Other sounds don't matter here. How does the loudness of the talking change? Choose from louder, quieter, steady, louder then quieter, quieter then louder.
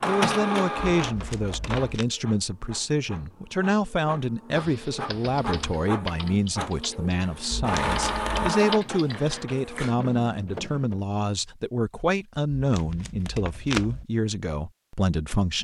steady.